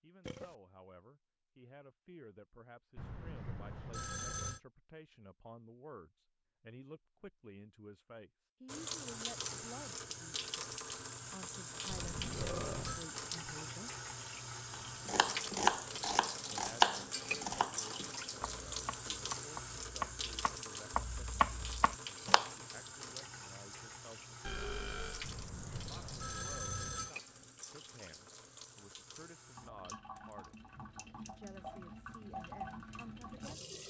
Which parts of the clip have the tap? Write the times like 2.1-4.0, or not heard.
8.7-33.8.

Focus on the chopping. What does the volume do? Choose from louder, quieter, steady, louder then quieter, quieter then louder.
quieter then louder.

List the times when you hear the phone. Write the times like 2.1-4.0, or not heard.
3.0-4.6, 11.8-13.1, 25.2-27.1.